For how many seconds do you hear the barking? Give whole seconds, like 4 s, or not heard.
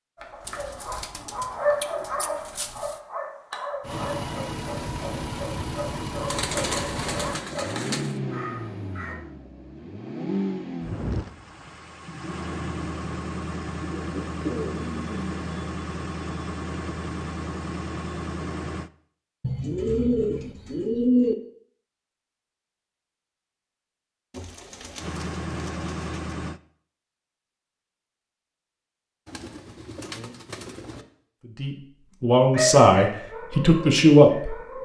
11 s.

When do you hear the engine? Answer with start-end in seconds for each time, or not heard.
3.8-18.9, 24.9-26.6.